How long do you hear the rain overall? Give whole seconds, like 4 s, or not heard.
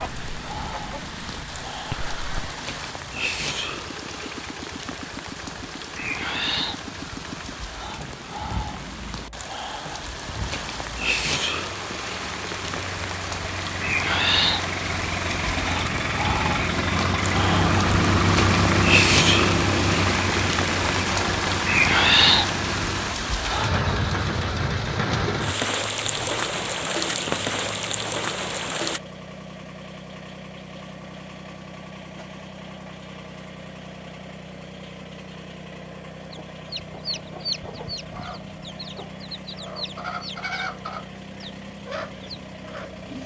29 s.